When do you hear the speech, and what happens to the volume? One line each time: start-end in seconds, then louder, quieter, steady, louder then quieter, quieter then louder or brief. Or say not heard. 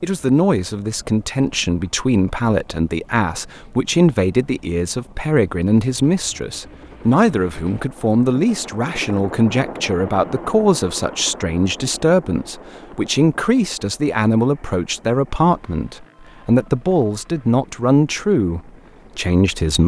0.0-19.8 steady.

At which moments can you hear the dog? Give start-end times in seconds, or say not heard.
not heard.